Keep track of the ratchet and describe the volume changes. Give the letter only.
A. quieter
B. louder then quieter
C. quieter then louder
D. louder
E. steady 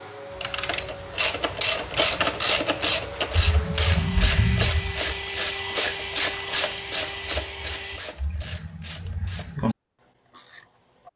A.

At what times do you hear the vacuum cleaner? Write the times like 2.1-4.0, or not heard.
0.0-8.0.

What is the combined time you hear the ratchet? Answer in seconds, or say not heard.
11 s.